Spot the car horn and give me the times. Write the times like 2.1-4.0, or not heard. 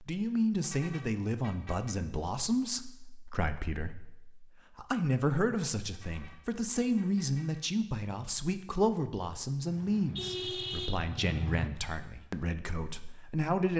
0.6-1.9, 5.9-7.6, 9.7-11.0.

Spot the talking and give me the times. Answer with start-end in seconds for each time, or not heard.
0.0-13.7.